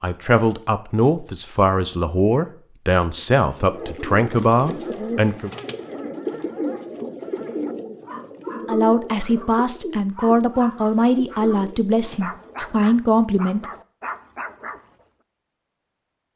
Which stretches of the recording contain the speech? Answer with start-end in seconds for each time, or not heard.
0.0-5.5, 8.7-13.7.